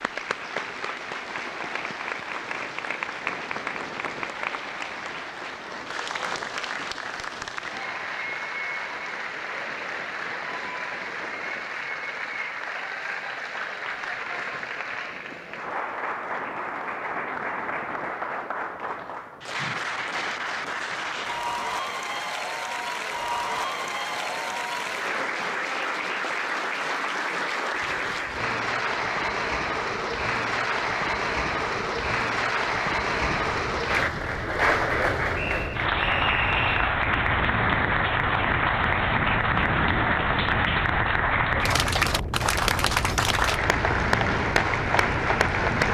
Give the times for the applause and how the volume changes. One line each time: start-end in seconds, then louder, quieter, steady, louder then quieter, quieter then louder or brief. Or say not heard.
0.0-45.8 louder.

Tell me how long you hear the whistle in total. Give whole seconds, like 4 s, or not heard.
2 s.